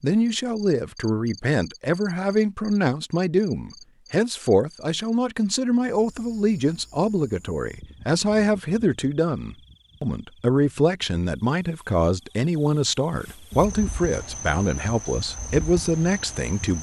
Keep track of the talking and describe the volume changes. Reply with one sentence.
The volume of the talking stays about the same.